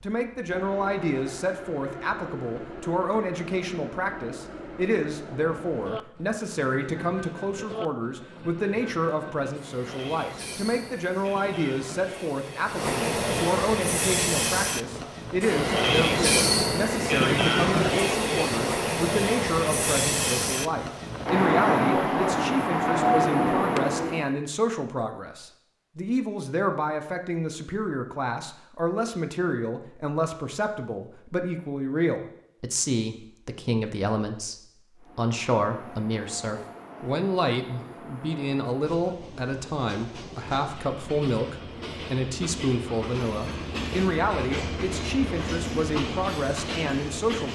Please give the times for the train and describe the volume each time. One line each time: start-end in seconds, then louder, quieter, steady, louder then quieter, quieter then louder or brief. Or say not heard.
0.0-24.3 louder
35.0-47.5 louder.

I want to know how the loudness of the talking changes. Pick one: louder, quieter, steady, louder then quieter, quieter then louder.
steady.